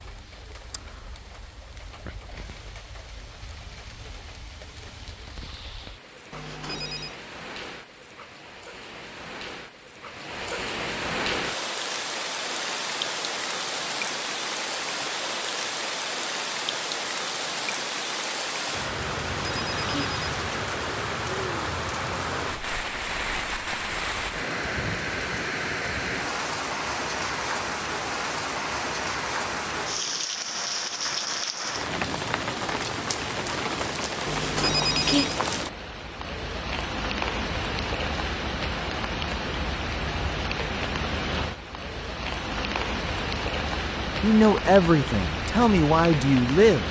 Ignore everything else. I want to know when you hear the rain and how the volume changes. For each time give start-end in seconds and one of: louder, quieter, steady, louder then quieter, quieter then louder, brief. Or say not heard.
0.0-46.8 louder.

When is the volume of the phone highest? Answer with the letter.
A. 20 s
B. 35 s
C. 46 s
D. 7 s
B.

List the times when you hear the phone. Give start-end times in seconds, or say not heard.
6.3-7.2, 19.2-20.2, 34.2-35.4.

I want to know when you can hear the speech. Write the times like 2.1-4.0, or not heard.
44.2-46.8.